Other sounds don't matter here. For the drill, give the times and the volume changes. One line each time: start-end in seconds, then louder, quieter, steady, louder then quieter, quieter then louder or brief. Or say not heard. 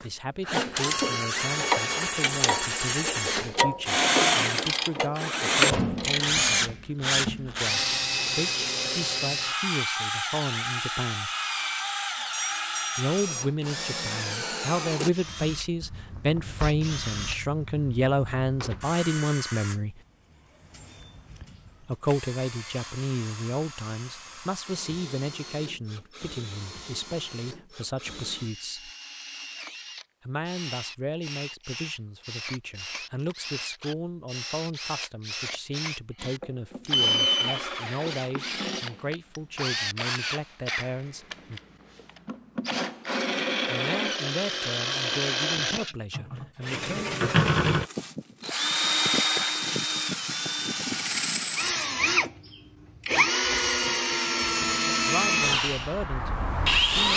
0.0-57.1 quieter then louder.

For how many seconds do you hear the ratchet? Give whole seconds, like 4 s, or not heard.
6 s.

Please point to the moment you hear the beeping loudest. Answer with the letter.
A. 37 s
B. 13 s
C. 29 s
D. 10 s
A.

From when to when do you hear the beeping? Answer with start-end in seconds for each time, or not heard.
12.3-13.4, 36.9-37.6.